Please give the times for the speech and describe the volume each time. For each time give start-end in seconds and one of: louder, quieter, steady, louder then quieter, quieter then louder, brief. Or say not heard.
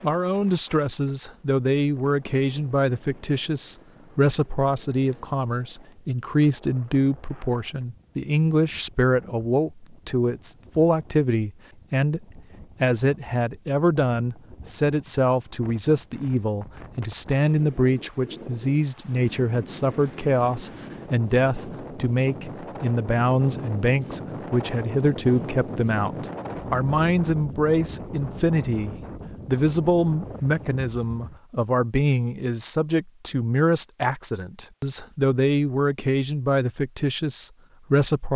0.0-38.3 steady.